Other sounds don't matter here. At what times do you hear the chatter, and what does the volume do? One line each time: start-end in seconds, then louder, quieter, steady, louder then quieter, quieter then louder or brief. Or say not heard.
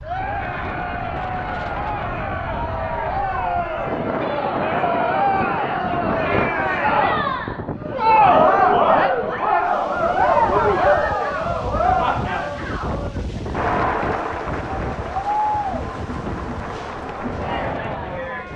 0.0-18.5 louder then quieter.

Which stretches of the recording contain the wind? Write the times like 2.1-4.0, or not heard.
0.0-18.5.